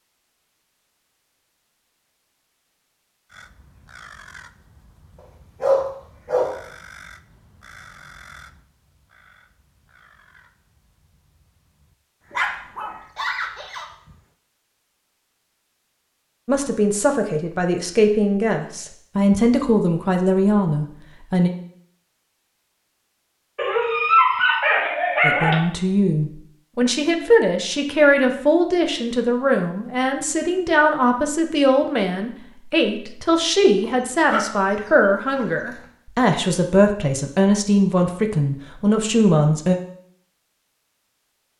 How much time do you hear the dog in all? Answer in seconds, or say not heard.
6 s.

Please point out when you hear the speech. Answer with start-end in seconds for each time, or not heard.
16.4-21.5, 25.2-39.8.